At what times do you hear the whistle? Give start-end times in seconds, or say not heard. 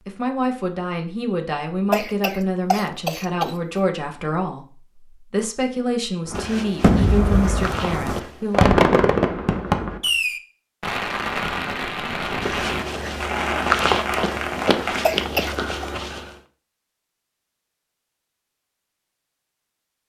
not heard.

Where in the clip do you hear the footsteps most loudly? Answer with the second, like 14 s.
14 s.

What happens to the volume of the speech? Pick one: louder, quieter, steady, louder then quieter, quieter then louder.
steady.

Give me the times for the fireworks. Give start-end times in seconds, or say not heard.
6.2-15.2.